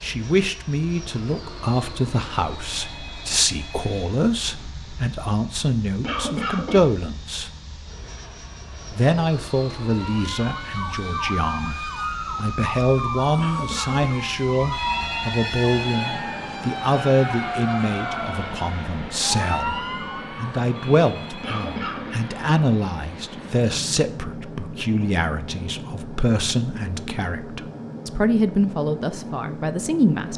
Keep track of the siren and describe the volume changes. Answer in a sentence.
The volume of the siren stays about the same.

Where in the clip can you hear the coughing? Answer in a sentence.
The coughing can be heard from 6.0 to 7.0 s, from 13.3 to 14.1 s and from 21.4 to 22.1 s.